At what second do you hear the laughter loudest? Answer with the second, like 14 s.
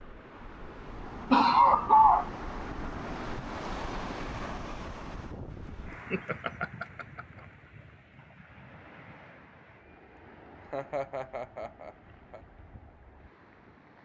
2 s.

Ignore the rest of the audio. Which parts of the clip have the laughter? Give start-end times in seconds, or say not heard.
1.3-2.3, 5.9-7.2, 10.6-12.4.